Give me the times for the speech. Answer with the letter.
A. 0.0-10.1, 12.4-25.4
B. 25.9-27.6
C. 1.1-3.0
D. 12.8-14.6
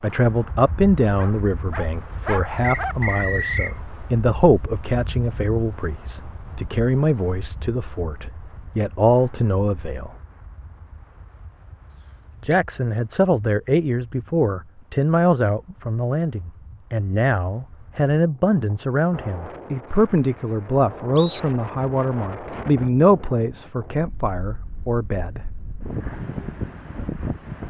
A.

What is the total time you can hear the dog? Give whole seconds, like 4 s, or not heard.
2 s.